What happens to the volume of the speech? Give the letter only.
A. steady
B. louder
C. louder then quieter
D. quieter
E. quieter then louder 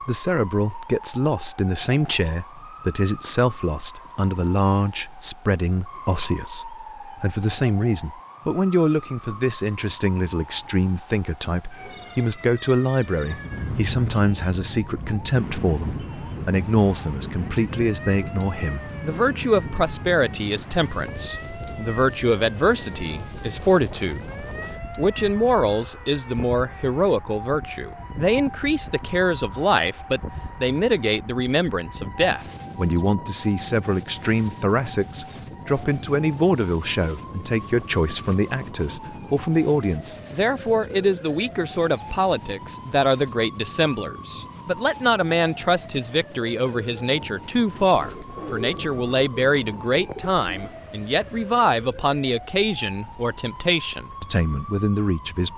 A.